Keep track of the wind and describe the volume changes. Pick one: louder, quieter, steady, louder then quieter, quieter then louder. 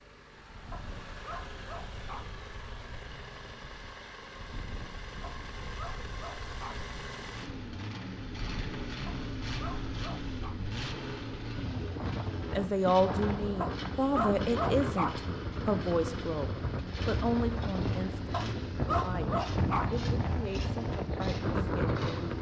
louder.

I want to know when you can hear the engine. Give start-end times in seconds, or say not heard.
0.0-22.3.